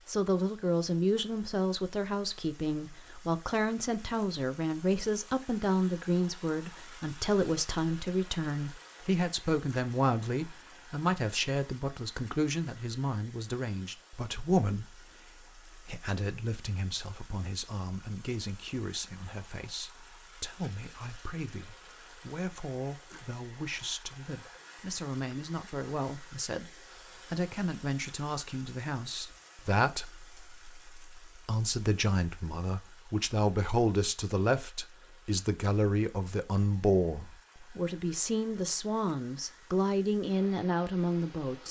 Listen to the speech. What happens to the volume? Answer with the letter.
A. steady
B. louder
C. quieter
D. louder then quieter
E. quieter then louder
E.